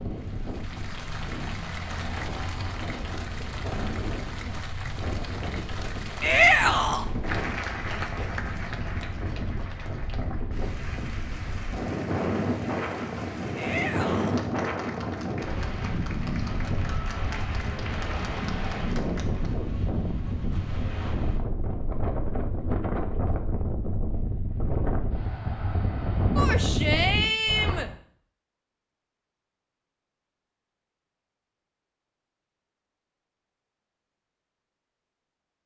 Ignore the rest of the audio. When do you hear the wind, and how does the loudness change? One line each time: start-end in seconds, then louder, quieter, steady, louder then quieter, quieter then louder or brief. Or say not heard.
0.0-27.9 louder.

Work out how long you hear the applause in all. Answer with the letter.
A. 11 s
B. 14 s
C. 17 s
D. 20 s
D.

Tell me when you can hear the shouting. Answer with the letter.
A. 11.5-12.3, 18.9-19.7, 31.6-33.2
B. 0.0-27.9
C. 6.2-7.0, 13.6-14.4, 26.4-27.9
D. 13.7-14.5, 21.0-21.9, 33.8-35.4
C.